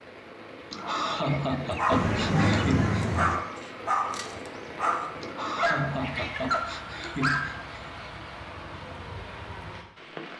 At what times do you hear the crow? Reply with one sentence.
You can't hear the crow here.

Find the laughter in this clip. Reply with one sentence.
You can hear the laughter from 0.7 to 3.0 s and from 5.2 to 8.0 s.